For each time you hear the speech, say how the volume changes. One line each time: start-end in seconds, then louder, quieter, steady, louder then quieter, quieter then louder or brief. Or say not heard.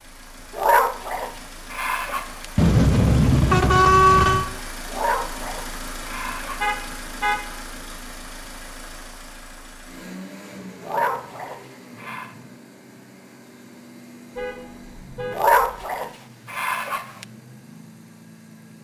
not heard.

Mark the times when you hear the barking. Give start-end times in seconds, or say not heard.
0.6-2.5, 4.9-6.7, 10.8-12.3, 15.3-17.2.